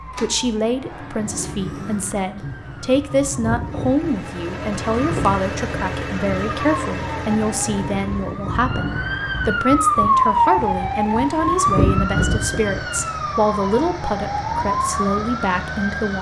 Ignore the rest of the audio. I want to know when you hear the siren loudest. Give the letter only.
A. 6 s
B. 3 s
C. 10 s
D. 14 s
C.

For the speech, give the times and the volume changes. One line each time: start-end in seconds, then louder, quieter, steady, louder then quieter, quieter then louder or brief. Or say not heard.
0.1-16.1 steady.